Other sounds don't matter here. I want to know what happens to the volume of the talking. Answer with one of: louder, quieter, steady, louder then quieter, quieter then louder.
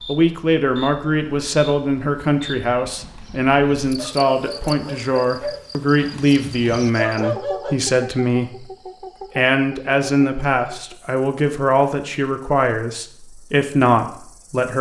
steady.